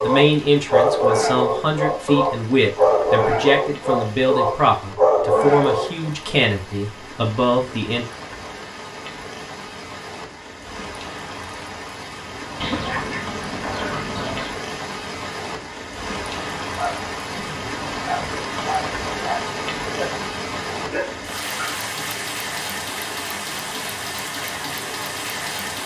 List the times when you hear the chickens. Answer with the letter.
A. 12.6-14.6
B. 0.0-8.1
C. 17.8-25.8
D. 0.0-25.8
A.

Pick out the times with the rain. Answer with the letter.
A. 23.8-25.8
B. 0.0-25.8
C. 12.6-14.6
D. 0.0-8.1
B.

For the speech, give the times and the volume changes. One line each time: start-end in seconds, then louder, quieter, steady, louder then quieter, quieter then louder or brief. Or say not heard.
0.0-8.1 steady.